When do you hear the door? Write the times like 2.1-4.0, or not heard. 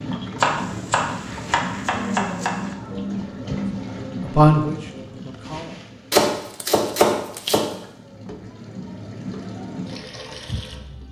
not heard.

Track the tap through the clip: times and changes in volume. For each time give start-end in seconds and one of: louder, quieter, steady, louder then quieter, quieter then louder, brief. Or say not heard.
0.0-11.0 quieter then louder.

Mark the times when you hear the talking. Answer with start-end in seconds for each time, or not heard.
3.6-5.8.